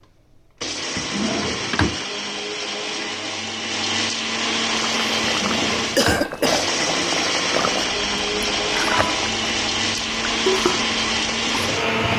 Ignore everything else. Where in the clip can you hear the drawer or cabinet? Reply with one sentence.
You can hear the drawer or cabinet from 0.9 to 2.0 s, from 5.2 to 6.3 s and from 8.4 to 9.2 s.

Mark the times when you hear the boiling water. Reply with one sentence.
The boiling water can be heard from 4.7 to 12.1 s.